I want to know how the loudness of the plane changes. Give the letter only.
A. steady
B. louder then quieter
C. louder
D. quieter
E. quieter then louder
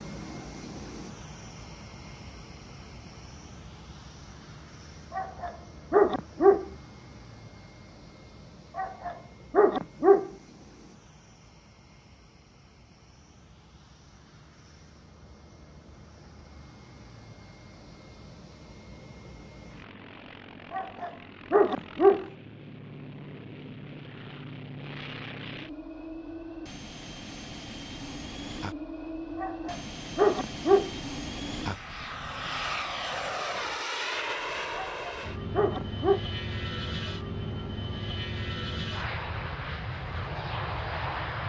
E.